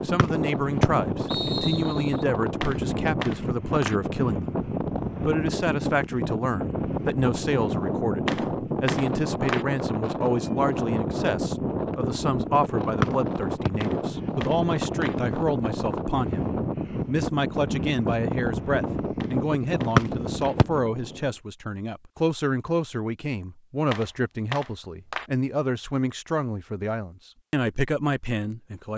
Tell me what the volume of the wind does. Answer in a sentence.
The volume of the wind stays about the same.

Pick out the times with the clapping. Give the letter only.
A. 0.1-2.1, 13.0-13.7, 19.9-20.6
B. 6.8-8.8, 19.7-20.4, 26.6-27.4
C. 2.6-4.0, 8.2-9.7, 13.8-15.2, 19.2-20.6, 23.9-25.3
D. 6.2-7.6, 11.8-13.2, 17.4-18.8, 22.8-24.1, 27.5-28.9
C.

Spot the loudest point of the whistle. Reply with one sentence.
The loudest moment of the whistle is at 20 seconds.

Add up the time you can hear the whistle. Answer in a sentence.
You can hear the whistle for 3 seconds altogether.